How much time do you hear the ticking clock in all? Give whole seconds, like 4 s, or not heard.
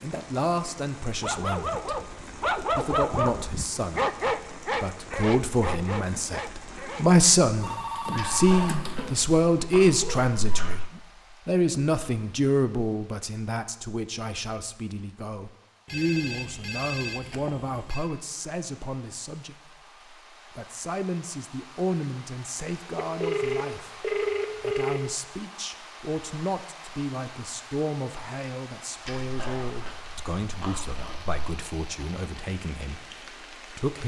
not heard.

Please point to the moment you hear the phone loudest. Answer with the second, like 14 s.
24 s.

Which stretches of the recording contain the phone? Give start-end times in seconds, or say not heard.
7.6-9.2, 15.8-18.1, 22.9-25.0.